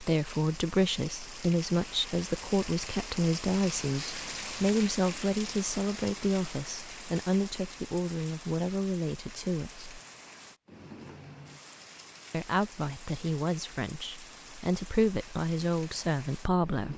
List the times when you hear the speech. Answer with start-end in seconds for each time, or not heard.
0.0-9.9, 12.3-16.9.